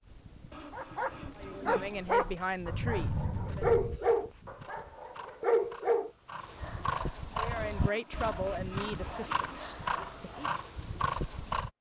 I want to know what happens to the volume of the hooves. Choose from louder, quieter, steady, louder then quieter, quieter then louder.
louder.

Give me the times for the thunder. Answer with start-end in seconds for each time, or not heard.
2.6-4.0.